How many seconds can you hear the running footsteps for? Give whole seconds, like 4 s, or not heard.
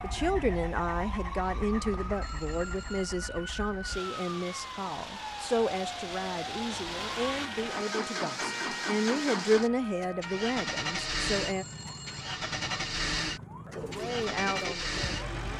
not heard.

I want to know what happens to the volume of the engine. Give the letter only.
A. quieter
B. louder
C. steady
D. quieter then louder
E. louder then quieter
B.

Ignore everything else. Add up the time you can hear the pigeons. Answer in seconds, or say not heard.
2 s.